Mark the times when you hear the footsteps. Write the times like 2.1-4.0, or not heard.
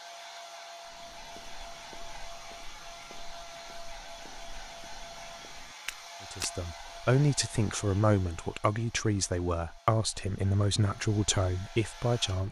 0.8-6.5.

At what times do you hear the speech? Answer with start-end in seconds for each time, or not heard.
6.3-12.4.